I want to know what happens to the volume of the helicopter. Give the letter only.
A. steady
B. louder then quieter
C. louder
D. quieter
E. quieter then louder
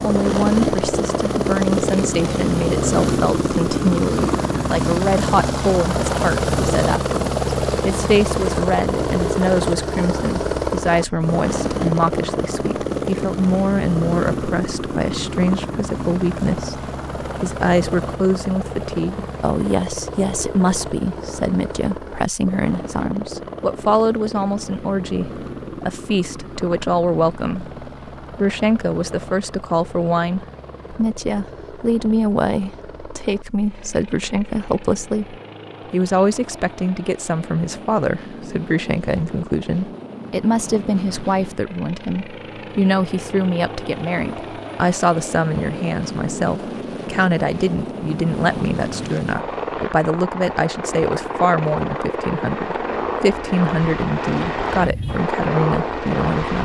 E.